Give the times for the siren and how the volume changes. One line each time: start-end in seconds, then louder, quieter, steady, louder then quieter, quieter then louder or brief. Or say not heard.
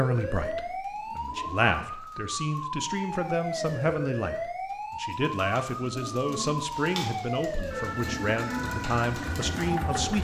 0.0-10.1 steady.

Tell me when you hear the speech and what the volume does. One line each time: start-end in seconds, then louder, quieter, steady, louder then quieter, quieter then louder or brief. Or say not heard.
0.0-10.1 steady.